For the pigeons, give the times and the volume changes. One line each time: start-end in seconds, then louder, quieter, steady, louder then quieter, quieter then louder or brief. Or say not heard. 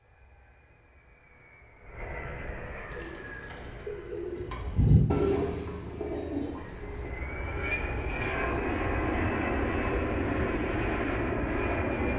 2.9-10.8 louder then quieter.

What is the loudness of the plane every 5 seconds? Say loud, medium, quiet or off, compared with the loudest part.
quiet, loud, loud.